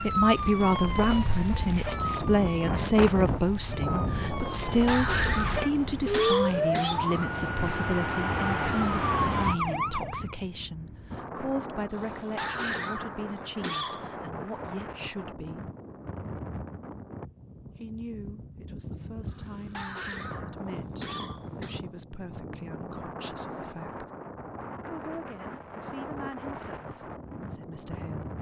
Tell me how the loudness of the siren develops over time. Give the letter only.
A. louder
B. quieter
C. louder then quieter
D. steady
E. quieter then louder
E.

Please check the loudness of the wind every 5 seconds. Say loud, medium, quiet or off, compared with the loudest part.
loud, medium, medium, medium, medium, medium.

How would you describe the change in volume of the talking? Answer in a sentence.
The loudness of the talking goes down.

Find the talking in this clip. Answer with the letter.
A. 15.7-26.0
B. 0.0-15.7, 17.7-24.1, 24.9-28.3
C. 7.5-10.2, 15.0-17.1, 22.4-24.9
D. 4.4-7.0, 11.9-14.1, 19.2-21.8
B.